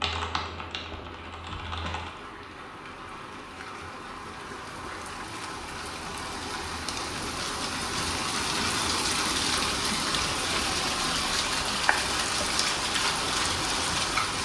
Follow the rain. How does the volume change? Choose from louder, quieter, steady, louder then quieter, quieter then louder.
louder.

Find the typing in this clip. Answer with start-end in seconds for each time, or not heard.
0.0-2.1.